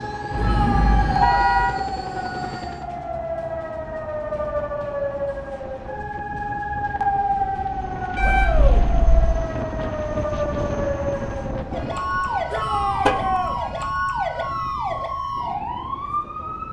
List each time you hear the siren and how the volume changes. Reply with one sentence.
The siren can be heard from 0.0 to 16.6 s, at a steady volume.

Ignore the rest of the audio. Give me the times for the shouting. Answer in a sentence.
You can hear the shouting from 0.3 to 1.2 s, from 8.2 to 8.8 s and from 12.5 to 13.6 s.